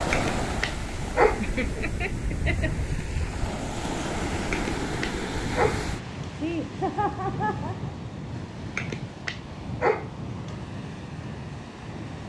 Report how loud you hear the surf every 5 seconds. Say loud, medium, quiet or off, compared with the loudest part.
loud, loud, medium.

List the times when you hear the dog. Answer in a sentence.
The dog can be heard from 0.1 to 1.4 s, from 4.5 to 6.3 s and from 8.8 to 10.6 s.